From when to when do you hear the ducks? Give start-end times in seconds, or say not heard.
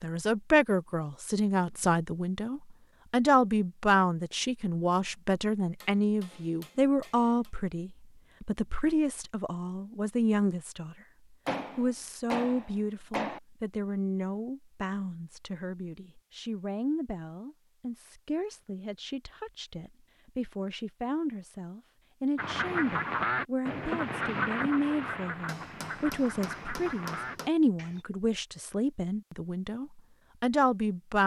22.4-28.1.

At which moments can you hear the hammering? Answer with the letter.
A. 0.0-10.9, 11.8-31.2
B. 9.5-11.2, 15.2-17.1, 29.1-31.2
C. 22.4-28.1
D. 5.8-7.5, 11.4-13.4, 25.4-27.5
D.